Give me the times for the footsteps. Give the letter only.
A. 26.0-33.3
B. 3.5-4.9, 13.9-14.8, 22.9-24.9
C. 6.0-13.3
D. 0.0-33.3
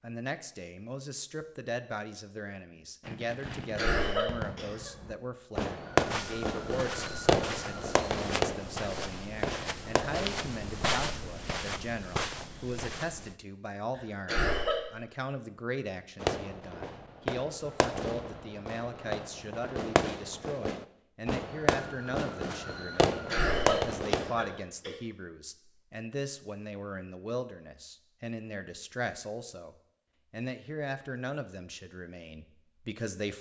C.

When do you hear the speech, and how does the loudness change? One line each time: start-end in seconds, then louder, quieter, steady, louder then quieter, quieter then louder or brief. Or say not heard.
0.0-33.3 steady.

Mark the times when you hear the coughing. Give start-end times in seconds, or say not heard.
3.5-4.9, 13.9-14.8, 22.9-24.9.